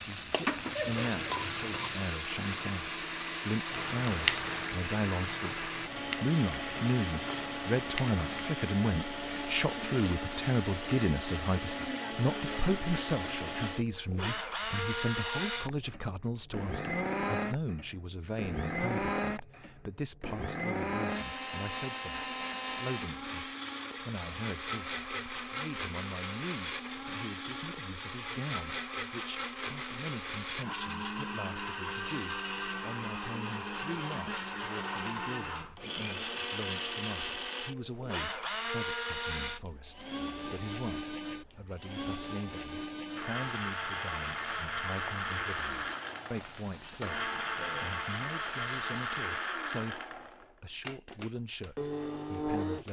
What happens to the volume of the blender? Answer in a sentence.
The loudness of the blender stays about the same.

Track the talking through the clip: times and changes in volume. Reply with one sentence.
The talking can be heard from 0.1 to 52.8 s, getting quieter.